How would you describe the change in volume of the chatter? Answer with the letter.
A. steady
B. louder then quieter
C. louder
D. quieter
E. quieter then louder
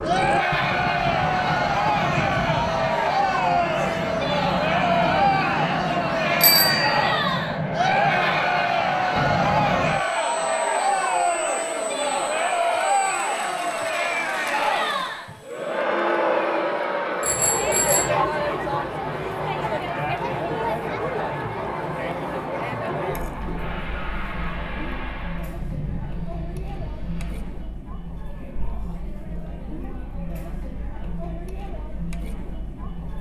D.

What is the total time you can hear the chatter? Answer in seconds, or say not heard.
33 s.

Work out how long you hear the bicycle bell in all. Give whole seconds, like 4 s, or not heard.
2 s.